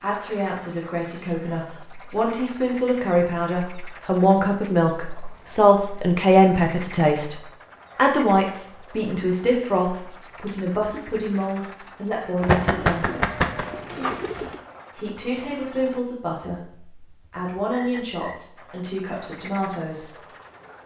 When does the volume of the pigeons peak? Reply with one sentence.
The volume of the pigeons peaks at 13 seconds.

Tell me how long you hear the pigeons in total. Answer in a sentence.
You can hear the pigeons for 2 seconds altogether.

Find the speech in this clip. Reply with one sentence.
You can hear the speech from 0.0 to 13.1 s and from 14.9 to 20.2 s.